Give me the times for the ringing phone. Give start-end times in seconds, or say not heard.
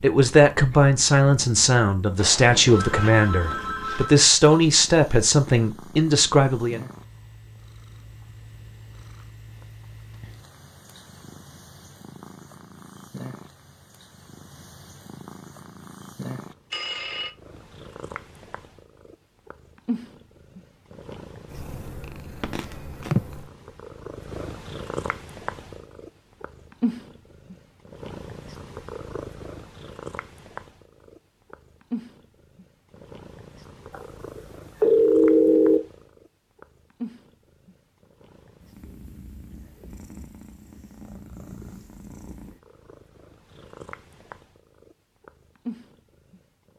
2.1-4.2, 16.7-17.3, 33.9-35.8.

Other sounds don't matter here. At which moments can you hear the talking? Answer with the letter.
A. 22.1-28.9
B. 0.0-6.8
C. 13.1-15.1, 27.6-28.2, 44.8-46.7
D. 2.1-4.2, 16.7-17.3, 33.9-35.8
B.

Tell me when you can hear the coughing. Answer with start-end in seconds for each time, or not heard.
not heard.